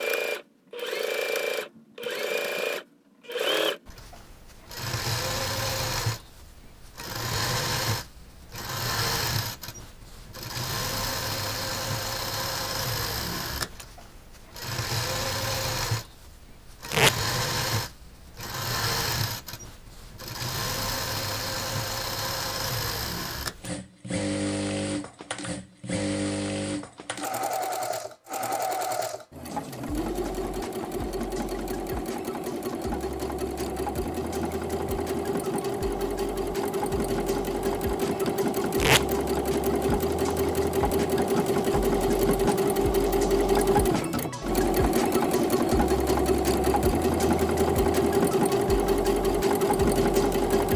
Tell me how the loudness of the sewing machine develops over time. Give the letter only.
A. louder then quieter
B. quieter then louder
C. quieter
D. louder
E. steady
D.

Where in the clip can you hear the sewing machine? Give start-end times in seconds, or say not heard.
0.0-50.7.